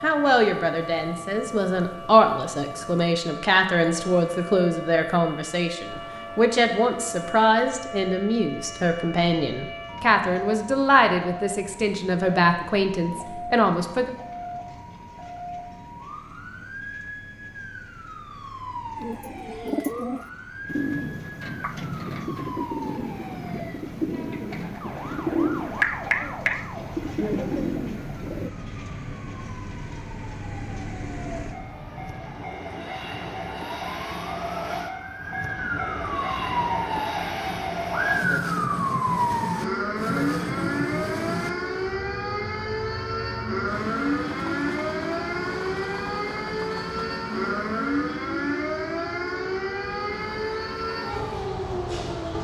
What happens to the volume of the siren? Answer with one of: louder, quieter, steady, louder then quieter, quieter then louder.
louder.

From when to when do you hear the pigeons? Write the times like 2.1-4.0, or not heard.
19.0-28.5.